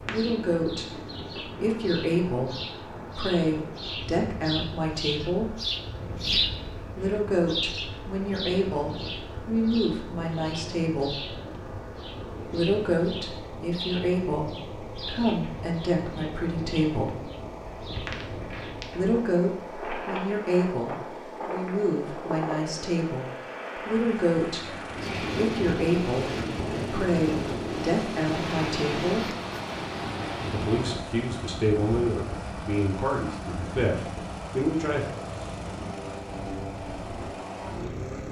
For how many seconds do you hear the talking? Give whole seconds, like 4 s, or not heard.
30 s.